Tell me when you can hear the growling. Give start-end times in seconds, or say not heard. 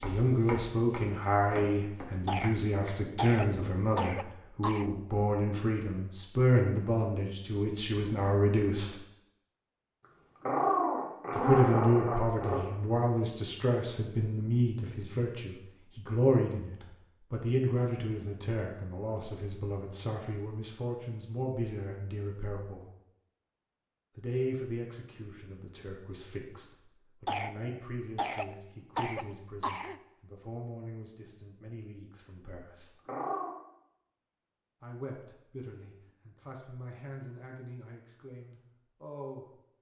10.4-12.7, 33.0-33.5.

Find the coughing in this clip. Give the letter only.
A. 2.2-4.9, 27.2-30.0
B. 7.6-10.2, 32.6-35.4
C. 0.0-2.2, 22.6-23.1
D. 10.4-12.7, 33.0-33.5
A.